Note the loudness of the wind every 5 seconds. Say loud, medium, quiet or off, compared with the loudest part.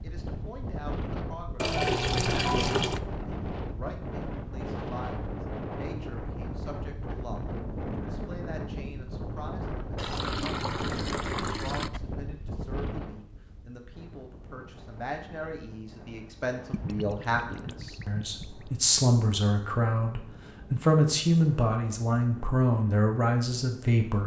loud, loud, loud, quiet, quiet.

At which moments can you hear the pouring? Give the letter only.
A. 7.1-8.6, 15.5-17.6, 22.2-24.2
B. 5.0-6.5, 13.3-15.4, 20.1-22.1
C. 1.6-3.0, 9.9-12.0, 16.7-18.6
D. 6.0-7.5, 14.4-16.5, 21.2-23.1
C.